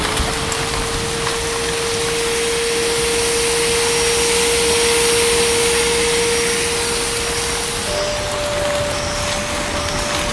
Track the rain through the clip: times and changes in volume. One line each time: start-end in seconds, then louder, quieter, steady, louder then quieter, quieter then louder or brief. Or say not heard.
0.0-10.2 quieter then louder.